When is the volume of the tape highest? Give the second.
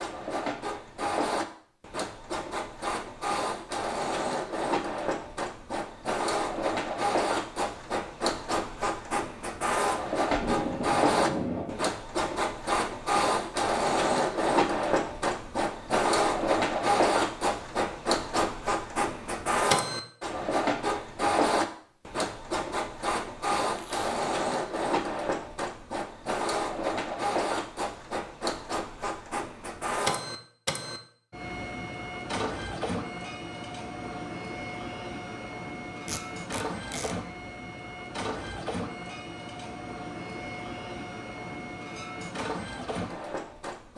11 s.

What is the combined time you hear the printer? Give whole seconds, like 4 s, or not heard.
44 s.